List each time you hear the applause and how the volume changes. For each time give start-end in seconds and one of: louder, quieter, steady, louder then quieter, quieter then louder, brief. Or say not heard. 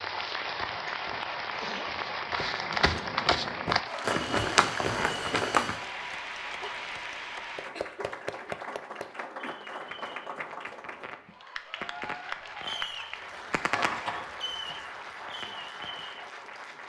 0.0-16.8 quieter.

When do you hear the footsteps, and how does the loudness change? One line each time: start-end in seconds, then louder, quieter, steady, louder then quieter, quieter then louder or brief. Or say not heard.
0.1-5.8 louder.